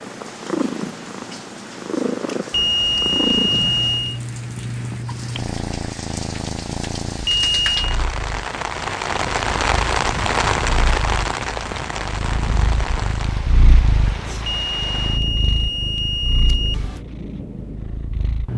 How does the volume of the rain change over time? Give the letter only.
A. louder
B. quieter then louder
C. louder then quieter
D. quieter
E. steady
C.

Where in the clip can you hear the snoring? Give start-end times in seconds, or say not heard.
not heard.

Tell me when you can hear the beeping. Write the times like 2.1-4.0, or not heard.
2.5-4.2, 7.2-8.0, 14.4-17.0.